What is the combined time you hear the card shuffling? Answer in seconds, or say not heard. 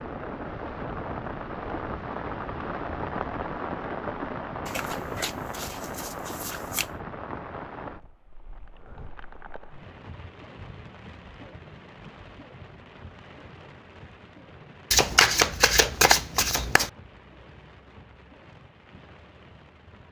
4 s.